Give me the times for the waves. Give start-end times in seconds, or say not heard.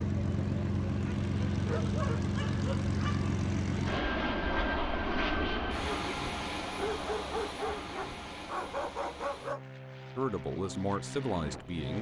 not heard.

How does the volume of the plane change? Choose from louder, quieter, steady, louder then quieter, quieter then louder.
quieter.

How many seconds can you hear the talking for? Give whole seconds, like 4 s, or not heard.
2 s.